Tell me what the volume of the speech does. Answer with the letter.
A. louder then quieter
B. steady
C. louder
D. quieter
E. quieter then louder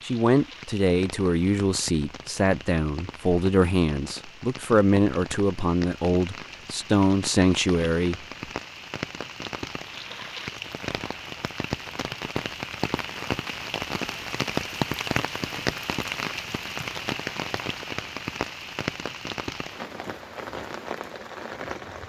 B.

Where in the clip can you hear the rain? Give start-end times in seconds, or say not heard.
0.0-22.0.